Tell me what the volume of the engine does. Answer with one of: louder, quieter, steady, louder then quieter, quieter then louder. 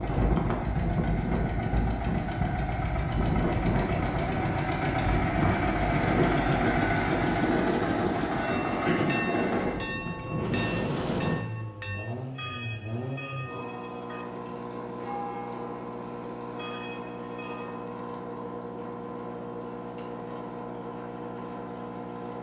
louder then quieter.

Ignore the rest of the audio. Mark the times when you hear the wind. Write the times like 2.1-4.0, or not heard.
0.0-11.4.